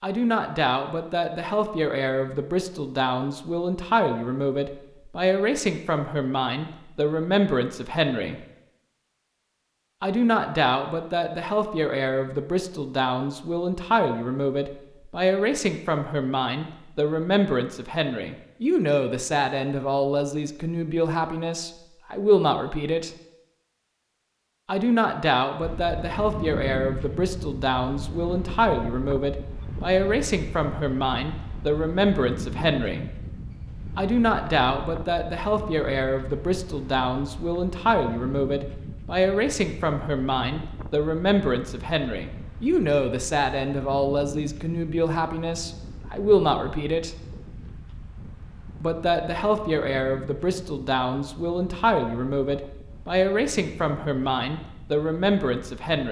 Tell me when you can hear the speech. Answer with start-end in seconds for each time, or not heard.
0.0-8.4, 10.0-23.1, 24.6-33.0, 34.0-47.1, 48.8-56.0.